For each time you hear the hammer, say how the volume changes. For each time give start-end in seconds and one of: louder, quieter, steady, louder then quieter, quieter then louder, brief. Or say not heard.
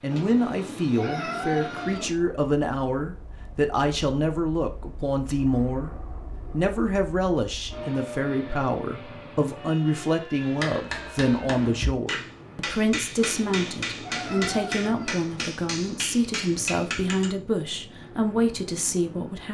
10.3-17.4 steady.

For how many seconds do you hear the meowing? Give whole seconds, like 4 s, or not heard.
4 s.